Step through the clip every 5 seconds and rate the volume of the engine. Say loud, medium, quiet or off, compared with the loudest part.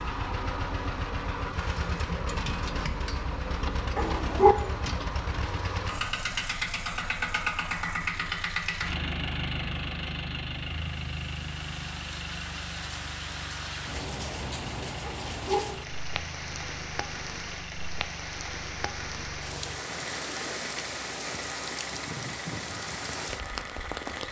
loud, loud, medium, quiet, medium.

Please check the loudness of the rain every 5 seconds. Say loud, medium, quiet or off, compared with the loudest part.
off, off, loud, loud, loud.